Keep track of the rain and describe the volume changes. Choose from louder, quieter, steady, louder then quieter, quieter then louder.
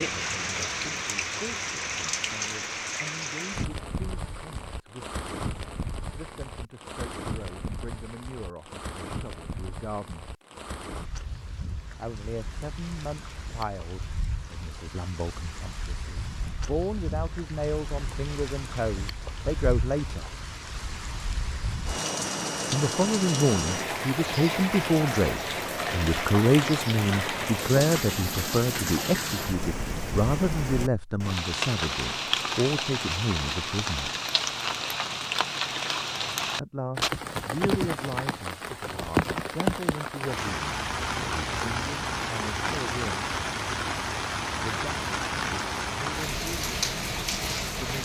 quieter then louder.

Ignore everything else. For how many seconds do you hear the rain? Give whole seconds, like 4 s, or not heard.
48 s.